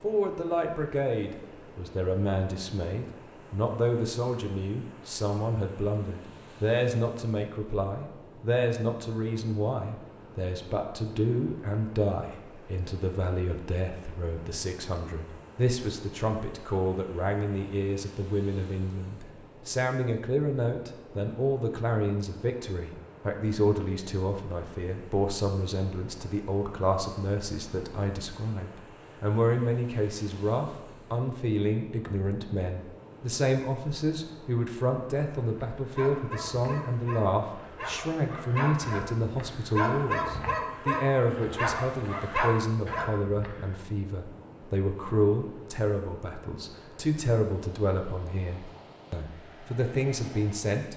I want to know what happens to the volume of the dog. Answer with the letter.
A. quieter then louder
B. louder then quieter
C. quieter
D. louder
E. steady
D.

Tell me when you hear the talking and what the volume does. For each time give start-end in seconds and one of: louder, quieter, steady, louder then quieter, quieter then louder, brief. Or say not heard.
0.0-50.9 steady.